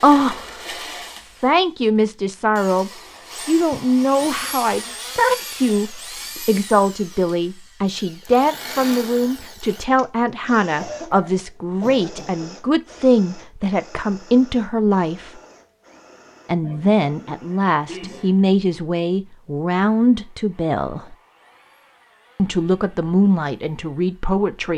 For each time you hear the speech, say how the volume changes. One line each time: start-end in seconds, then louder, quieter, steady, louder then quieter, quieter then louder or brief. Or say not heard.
0.0-15.3 steady
16.4-21.1 steady
22.4-24.7 brief.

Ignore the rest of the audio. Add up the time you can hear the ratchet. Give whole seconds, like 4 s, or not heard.
not heard.